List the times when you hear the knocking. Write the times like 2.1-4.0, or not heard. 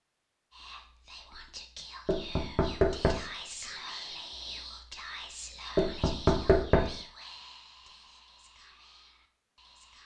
2.0-3.3, 5.8-7.0.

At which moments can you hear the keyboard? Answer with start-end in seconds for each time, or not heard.
not heard.